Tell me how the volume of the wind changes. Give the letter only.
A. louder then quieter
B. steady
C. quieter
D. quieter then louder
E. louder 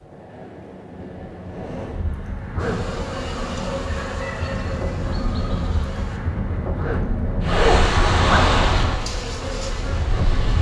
E.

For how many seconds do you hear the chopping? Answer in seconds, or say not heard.
not heard.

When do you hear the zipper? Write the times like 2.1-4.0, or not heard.
2.5-3.0, 6.8-8.6.